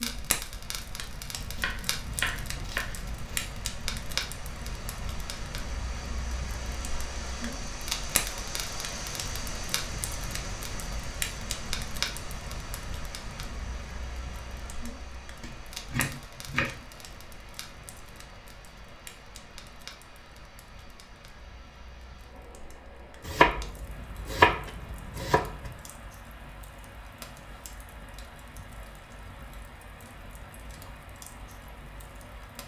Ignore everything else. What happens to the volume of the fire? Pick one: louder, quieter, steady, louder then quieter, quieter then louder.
quieter.